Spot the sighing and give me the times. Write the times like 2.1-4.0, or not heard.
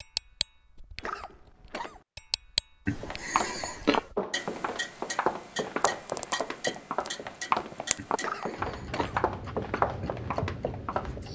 2.9-4.1, 8.0-9.6.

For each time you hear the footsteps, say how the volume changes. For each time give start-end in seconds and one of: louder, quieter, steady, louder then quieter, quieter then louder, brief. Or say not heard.
3.0-11.2 steady.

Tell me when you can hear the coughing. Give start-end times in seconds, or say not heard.
0.9-2.0, 8.2-9.2.